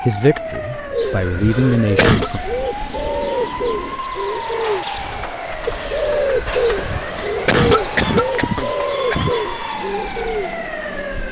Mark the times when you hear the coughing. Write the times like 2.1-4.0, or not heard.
1.4-2.3, 6.8-9.3.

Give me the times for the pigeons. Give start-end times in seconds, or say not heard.
0.9-10.6.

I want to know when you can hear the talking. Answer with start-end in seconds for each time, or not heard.
0.0-2.4.